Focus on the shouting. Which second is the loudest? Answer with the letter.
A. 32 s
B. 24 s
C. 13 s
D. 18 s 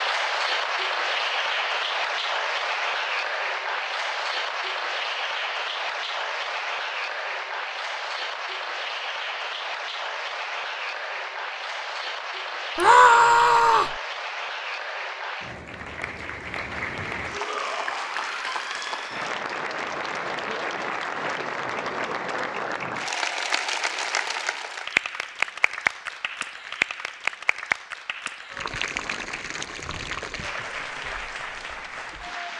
C.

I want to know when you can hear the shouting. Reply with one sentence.
You can hear the shouting from 12.8 to 13.9 s and from 17.3 to 19.2 s.